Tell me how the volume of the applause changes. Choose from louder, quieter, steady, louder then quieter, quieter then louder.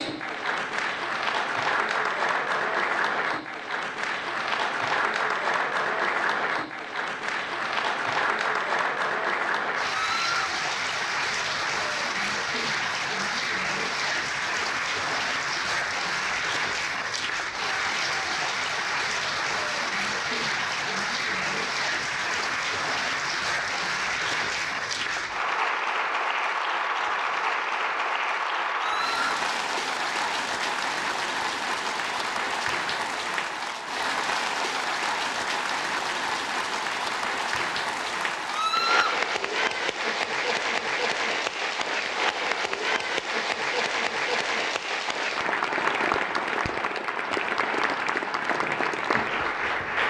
steady.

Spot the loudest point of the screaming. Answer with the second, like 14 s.
39 s.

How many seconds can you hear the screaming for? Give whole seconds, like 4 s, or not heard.
2 s.